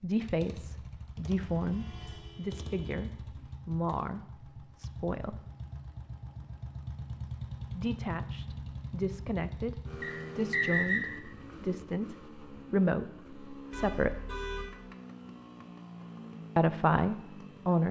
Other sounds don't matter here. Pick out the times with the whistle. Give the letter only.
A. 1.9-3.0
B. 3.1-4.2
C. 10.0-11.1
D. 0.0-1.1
C.